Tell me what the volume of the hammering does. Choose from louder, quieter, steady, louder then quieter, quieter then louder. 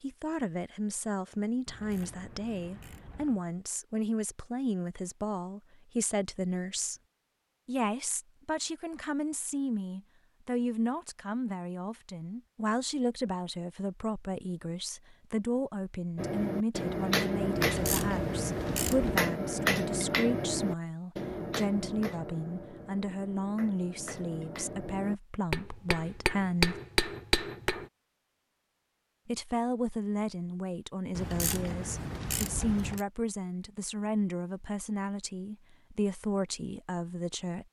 quieter then louder.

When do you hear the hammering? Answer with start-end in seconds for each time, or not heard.
16.1-27.9.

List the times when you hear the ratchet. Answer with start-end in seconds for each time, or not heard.
1.6-3.5, 17.6-19.2, 31.1-33.0.